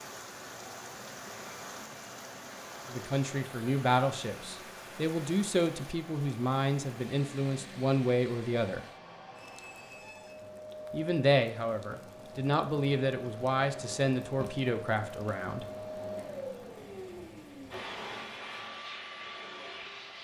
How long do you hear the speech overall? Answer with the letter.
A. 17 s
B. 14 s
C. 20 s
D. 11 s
D.